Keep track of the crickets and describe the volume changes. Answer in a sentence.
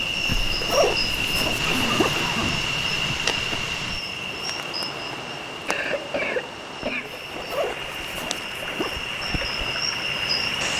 The volume of the crickets goes down, then up.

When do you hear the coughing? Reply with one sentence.
The coughing can be heard from 1.6 to 2.7 s and from 5.7 to 7.2 s.